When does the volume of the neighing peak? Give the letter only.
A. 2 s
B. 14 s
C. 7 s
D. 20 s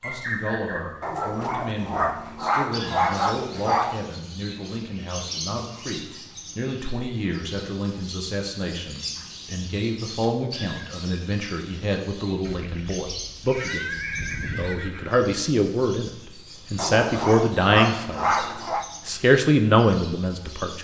B.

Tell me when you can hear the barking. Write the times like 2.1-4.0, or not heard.
1.0-4.0, 16.8-18.9.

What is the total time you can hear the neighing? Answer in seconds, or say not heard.
3 s.